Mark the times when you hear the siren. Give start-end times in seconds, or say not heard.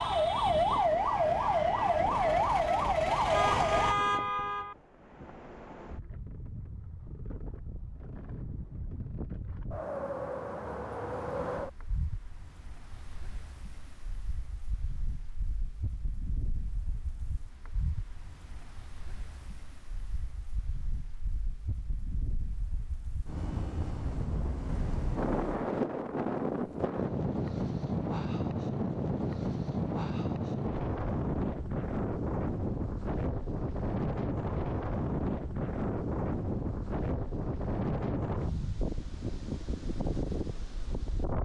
0.0-4.0.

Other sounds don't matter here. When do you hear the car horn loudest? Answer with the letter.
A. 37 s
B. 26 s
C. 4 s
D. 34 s
C.